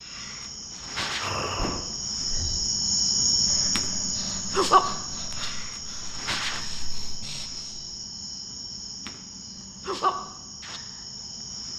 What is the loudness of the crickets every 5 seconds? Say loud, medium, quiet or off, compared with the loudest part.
loud, medium, medium.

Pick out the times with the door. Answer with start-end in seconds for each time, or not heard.
1.1-2.0.